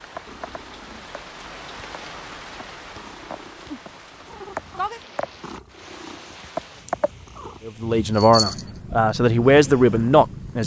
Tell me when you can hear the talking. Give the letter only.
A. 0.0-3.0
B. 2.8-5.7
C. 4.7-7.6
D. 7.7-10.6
D.